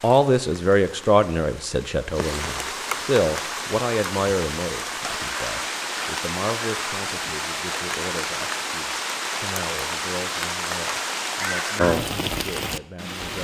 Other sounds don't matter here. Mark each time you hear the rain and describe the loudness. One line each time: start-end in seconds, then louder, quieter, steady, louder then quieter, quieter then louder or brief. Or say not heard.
0.0-13.3 louder.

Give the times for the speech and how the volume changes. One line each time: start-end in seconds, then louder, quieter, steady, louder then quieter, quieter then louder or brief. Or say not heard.
0.0-13.3 quieter.